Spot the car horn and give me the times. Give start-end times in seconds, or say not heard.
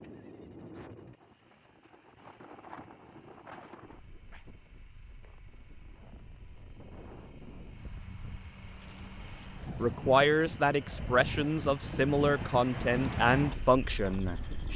not heard.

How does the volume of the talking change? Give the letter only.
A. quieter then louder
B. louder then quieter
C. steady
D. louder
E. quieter
C.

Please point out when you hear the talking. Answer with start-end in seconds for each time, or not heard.
9.8-14.7.